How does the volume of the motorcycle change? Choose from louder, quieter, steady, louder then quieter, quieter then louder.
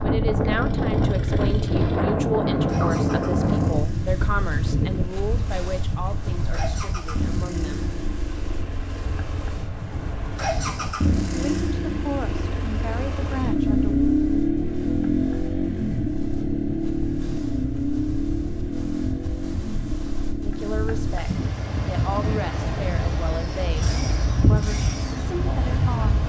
louder then quieter.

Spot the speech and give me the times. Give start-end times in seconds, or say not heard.
0.0-8.0, 11.3-14.1, 20.4-23.9, 24.5-26.2.